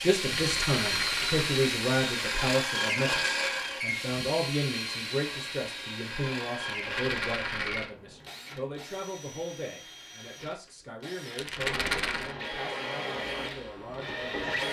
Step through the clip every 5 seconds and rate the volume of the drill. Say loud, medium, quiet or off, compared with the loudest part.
loud, medium, medium.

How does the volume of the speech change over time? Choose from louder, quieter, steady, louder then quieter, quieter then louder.
quieter.